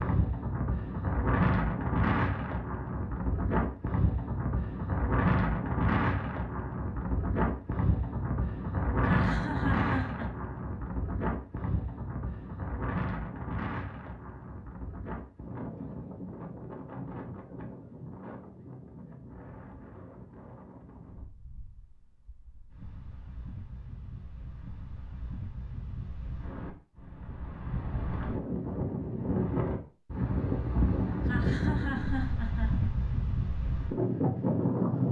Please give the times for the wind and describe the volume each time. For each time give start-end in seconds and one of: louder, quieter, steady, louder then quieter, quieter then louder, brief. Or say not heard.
0.0-35.0 quieter then louder.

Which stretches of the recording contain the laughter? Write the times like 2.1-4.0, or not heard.
9.0-10.2, 31.2-32.9.